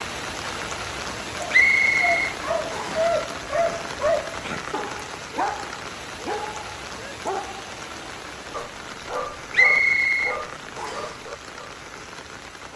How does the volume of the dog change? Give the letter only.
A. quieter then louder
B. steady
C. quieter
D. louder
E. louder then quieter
C.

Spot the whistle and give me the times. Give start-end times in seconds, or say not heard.
1.5-3.1, 9.5-11.2.